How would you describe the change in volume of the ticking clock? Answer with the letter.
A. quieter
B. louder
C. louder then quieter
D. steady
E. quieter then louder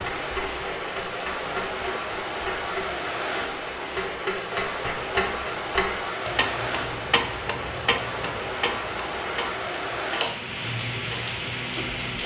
C.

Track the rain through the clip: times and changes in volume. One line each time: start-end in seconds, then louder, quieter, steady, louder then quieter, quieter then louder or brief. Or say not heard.
0.0-12.2 steady.